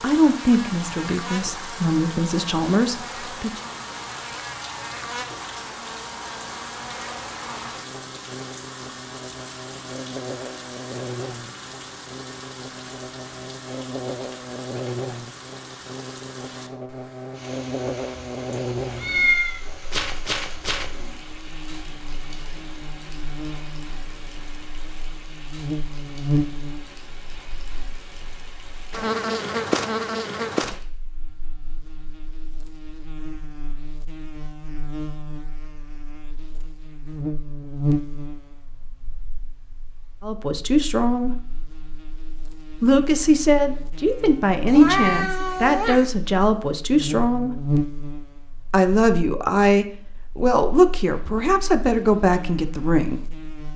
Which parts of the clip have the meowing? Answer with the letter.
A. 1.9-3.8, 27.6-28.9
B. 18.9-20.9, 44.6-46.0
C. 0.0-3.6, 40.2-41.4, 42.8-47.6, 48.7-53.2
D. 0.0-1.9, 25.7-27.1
B.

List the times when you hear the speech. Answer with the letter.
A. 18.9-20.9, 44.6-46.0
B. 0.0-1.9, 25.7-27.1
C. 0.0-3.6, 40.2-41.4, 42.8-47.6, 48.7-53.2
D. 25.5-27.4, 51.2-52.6
C.